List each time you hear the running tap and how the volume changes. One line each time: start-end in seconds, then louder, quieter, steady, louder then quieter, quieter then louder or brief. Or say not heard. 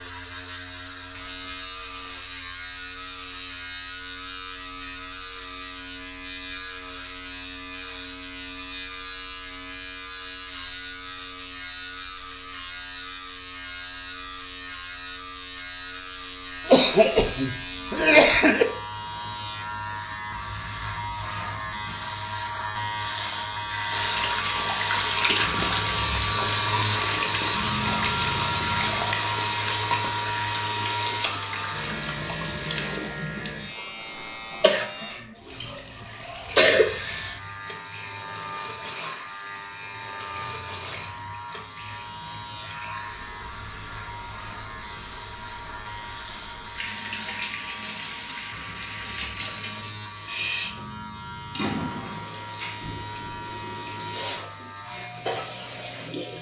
23.9-56.3 quieter then louder.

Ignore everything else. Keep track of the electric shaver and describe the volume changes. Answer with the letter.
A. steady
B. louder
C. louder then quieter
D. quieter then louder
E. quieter
C.